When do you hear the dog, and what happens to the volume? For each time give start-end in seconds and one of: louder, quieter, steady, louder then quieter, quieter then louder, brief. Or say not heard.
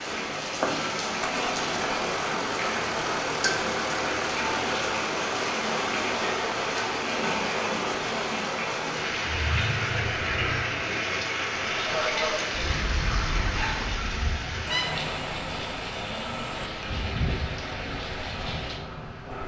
not heard.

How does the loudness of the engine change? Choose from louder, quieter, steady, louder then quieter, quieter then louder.
quieter.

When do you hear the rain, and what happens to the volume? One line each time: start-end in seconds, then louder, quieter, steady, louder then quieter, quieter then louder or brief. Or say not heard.
0.0-19.4 quieter.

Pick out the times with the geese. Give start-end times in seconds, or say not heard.
11.8-18.8.